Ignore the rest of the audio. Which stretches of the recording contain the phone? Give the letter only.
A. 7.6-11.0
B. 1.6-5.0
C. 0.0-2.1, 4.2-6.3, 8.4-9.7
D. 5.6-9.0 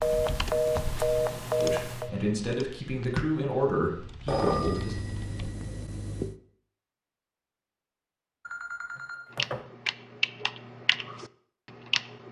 C.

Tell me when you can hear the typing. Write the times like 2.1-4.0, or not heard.
0.0-5.5, 9.3-12.2.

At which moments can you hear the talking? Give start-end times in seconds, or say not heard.
1.6-5.0.